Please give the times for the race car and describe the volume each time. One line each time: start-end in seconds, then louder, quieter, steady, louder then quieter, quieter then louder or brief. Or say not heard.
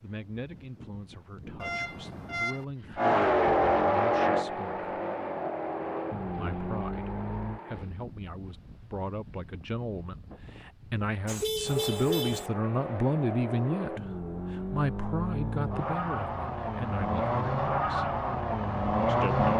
3.0-7.6 quieter
11.6-19.5 louder.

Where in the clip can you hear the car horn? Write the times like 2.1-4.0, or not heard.
1.6-2.6, 11.2-12.5.